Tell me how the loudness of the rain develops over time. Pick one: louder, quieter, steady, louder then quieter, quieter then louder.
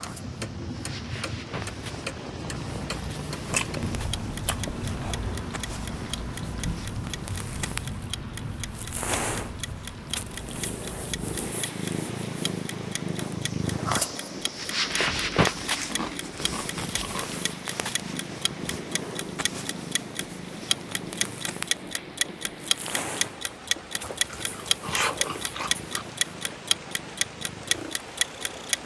quieter.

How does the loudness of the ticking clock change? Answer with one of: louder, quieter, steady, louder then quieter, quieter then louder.
louder.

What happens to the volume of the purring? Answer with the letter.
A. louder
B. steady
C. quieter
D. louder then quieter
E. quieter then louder
D.